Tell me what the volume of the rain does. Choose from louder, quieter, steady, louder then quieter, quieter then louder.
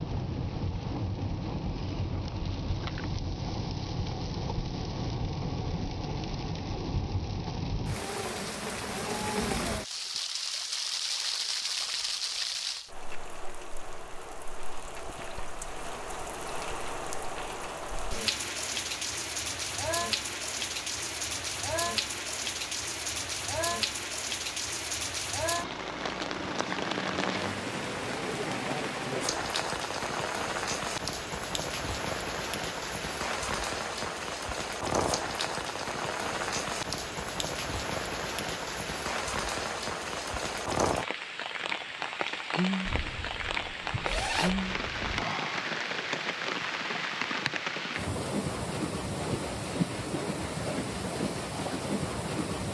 steady.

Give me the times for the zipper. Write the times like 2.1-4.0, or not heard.
42.9-45.2.